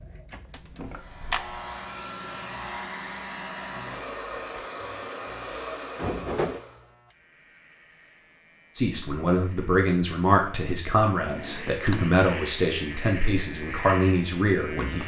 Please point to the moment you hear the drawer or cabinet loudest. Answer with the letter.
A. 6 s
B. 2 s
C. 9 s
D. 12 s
A.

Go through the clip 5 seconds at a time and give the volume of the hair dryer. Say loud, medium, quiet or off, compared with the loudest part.
loud, loud, off.